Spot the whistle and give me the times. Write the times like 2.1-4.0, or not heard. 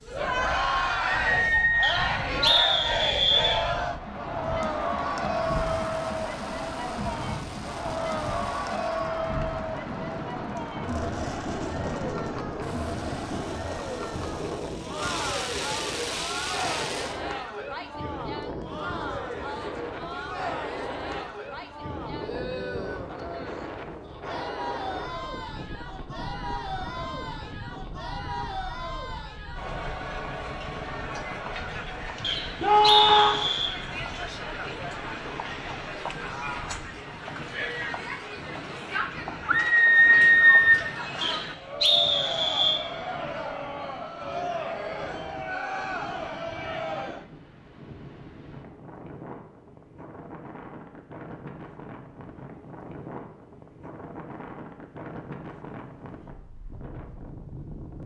1.8-3.6, 32.2-33.7, 41.2-42.8.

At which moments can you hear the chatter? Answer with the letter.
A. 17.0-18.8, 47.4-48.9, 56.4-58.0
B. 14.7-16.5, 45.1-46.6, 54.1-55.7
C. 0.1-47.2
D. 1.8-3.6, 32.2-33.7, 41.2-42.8
C.